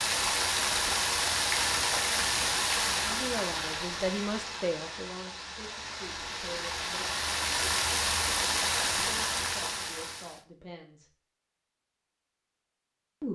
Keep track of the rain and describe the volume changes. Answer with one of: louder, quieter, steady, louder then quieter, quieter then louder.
quieter then louder.